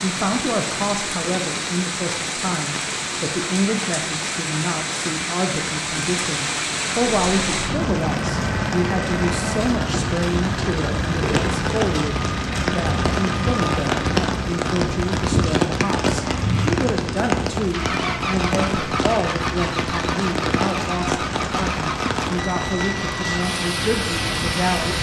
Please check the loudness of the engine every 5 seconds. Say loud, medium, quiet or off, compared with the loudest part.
off, loud, loud, loud, loud.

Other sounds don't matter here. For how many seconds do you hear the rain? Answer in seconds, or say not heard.
25 s.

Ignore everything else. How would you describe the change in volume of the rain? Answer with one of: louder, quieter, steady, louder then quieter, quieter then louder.
steady.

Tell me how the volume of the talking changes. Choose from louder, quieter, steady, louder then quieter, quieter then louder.
steady.